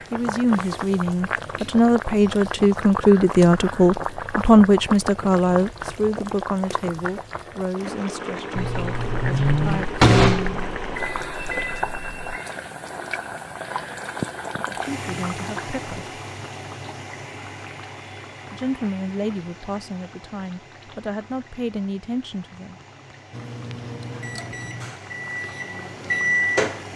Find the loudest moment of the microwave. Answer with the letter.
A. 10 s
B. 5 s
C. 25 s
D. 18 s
A.